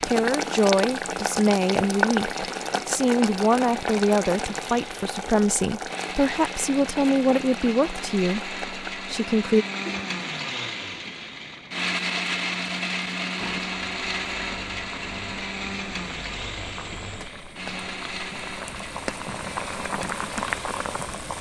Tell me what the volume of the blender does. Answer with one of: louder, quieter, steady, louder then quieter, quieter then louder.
louder then quieter.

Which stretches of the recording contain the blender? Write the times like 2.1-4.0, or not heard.
0.1-21.3.